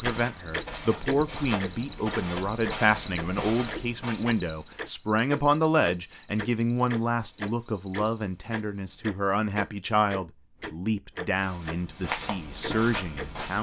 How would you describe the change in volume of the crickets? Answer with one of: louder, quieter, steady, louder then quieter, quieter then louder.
quieter.